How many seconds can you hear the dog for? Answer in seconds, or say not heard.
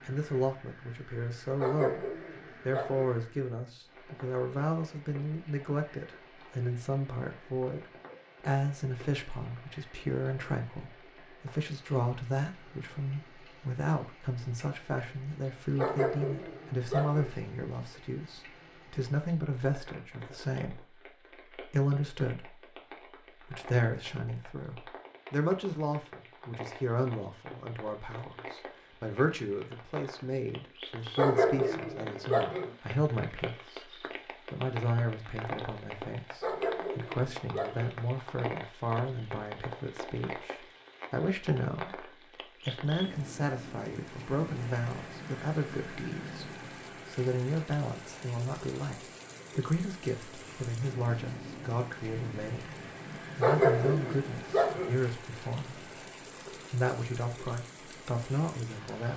8 s.